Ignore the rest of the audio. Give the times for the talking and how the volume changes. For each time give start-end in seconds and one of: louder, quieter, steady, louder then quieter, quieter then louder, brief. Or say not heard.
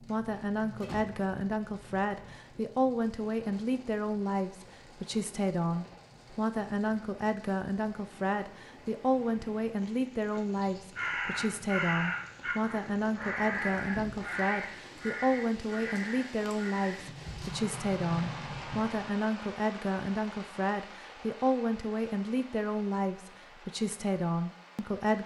0.0-25.2 steady.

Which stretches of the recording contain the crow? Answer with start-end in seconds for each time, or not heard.
10.5-17.1.